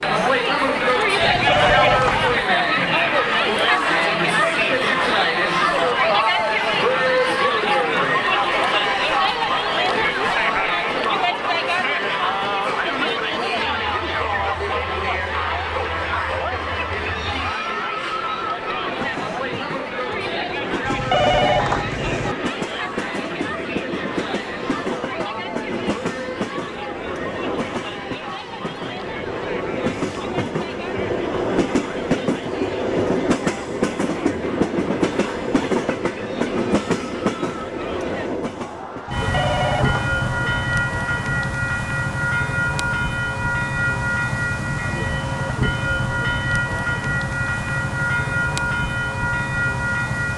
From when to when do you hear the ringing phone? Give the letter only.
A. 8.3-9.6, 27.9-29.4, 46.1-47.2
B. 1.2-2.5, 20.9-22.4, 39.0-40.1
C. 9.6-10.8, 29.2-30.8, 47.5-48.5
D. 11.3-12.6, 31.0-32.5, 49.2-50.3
B.